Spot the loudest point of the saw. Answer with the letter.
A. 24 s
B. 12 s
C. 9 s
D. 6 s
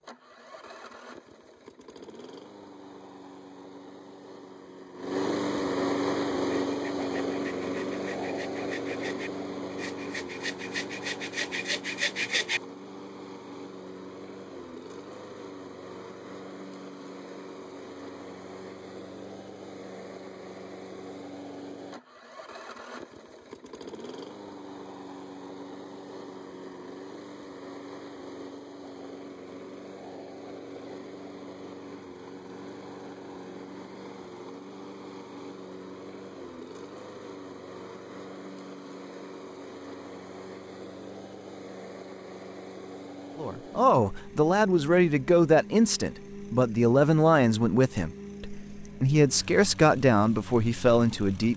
B.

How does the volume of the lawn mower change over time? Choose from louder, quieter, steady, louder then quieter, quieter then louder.
quieter.